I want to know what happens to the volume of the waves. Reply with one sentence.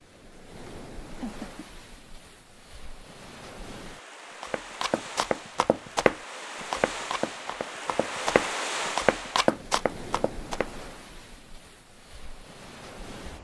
The loudness of the waves goes up, then down.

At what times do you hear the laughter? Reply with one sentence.
You can hear the laughter from 0.7 to 1.6 s.